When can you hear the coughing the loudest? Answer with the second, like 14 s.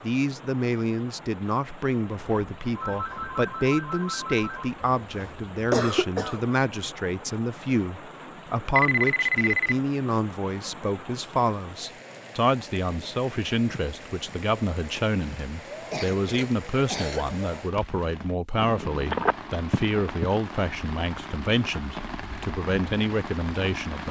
6 s.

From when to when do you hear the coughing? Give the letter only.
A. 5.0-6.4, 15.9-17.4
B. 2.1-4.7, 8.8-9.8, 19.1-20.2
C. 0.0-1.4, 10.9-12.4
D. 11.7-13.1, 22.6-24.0
A.